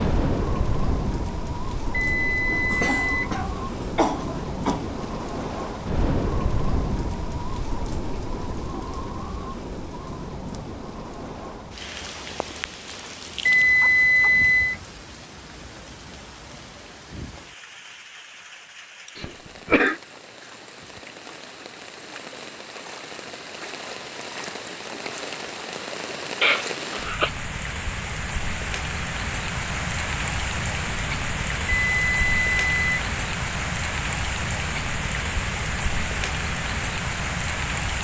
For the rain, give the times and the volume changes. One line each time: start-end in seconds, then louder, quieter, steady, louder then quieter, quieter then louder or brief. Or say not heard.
0.0-37.9 quieter then louder.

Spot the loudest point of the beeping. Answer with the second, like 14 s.
14 s.